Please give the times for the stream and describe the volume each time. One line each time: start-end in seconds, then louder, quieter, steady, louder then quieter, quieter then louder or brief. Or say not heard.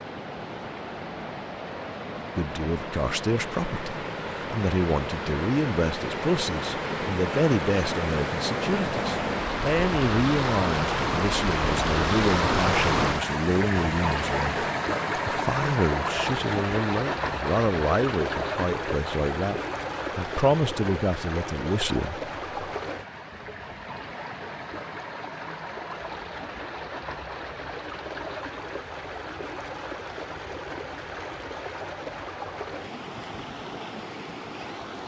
0.0-35.0 louder then quieter.